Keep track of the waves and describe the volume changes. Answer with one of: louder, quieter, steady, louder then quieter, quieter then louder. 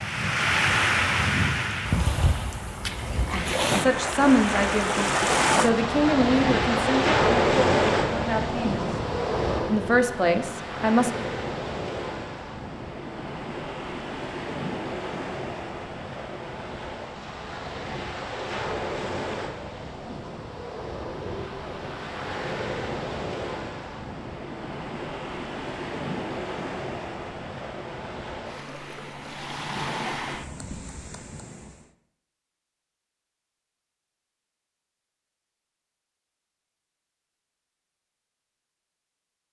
quieter.